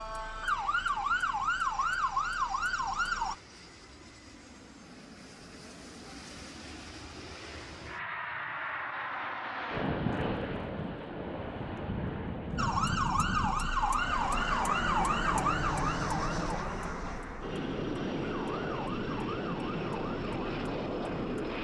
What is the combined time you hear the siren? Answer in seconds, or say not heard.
12 s.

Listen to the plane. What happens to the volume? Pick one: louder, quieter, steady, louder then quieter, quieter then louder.
louder.